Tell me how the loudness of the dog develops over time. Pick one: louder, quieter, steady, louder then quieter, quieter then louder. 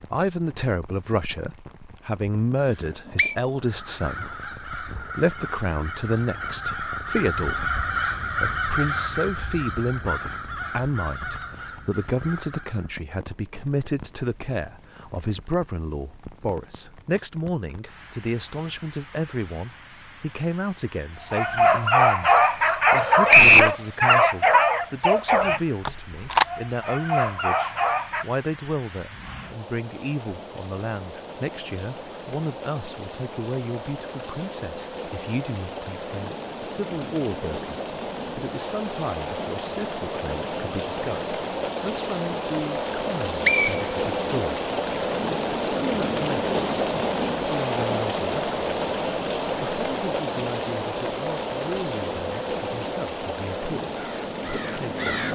quieter.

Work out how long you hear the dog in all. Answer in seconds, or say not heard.
7 s.